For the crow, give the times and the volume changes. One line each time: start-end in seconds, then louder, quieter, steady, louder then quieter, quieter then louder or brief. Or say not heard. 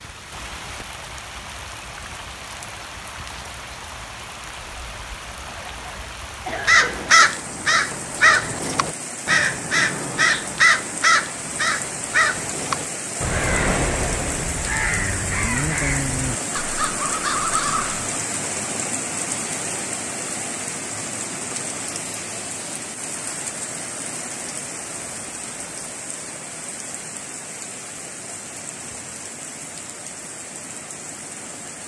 6.7-18.1 quieter.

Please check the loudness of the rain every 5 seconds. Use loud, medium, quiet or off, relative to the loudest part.
medium, medium, loud, loud, loud, medium, medium.